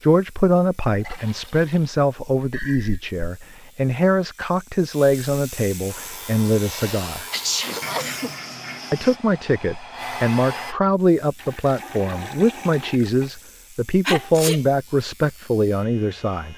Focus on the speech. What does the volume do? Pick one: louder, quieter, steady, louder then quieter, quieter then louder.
steady.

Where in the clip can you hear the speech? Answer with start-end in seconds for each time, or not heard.
0.0-7.2, 8.9-16.5.